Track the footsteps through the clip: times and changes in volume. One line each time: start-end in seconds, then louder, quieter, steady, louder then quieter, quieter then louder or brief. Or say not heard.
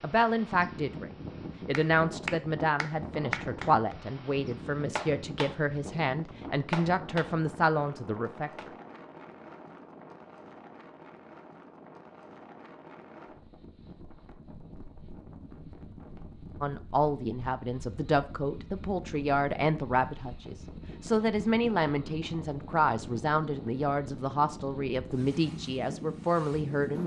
not heard.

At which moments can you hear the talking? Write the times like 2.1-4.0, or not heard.
0.0-8.7, 16.6-27.0.